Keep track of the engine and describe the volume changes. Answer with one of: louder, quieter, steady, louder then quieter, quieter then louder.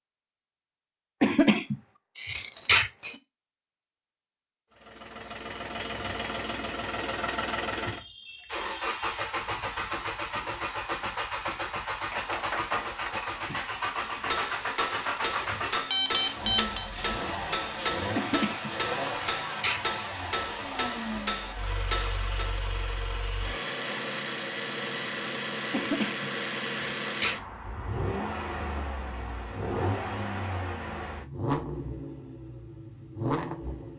steady.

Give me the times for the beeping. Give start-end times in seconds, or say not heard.
15.3-16.9.